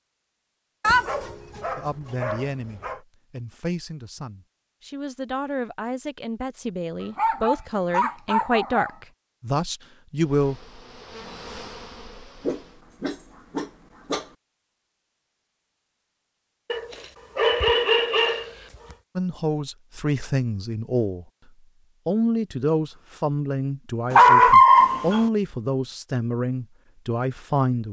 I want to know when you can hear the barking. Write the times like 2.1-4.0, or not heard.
0.8-3.0, 7.0-8.9, 12.4-14.2, 16.7-18.9, 24.1-25.2.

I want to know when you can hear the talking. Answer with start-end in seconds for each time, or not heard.
1.8-10.6, 19.1-21.2, 22.1-27.8.